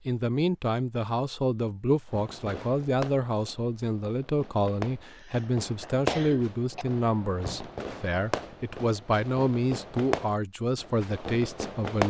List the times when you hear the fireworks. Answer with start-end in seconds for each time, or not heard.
2.1-12.0.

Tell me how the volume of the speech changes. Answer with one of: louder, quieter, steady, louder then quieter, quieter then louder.
steady.